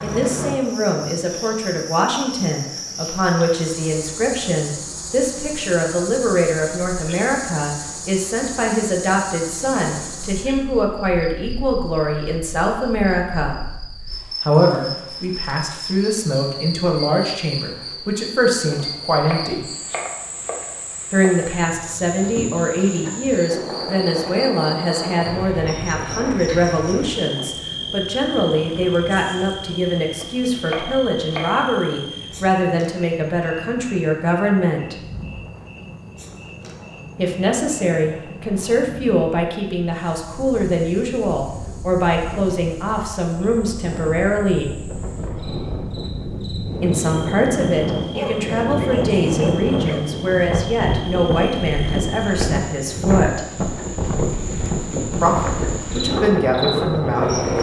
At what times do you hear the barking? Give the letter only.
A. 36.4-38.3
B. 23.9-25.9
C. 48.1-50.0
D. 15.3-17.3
C.